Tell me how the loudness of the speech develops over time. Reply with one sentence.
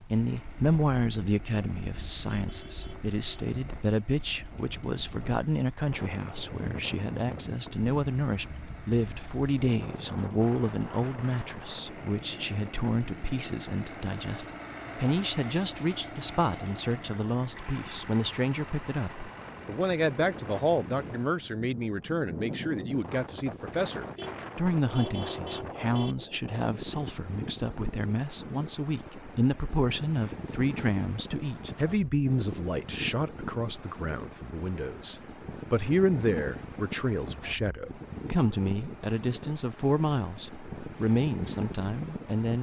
The loudness of the speech stays about the same.